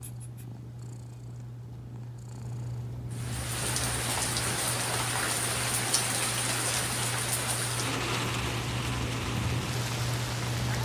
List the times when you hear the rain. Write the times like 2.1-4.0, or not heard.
3.1-10.8.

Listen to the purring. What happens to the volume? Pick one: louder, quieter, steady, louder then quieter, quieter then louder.
louder.